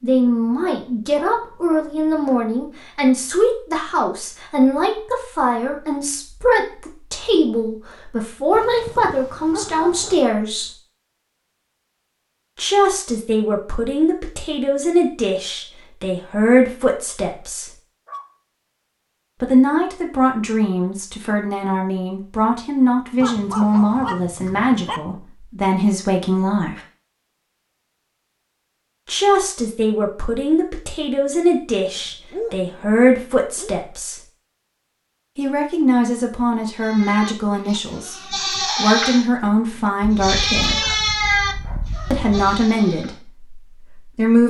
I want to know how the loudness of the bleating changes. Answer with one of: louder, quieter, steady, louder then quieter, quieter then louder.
louder then quieter.